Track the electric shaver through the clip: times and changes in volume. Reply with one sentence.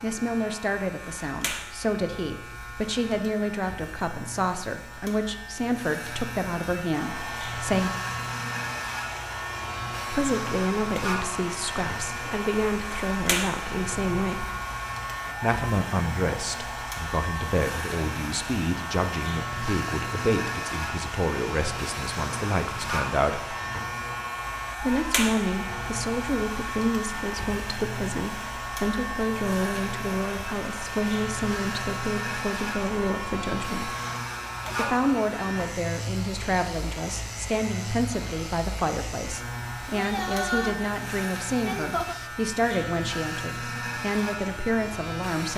You can hear the electric shaver from 0.0 to 45.5 s, at a steady volume.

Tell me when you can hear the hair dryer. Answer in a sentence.
You can hear the hair dryer from 6.9 to 42.3 s.